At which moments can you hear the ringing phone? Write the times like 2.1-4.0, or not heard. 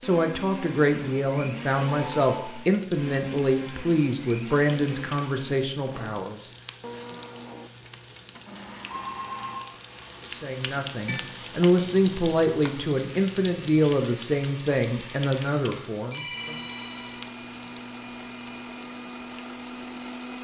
1.9-2.5, 8.9-9.7, 16.1-17.2.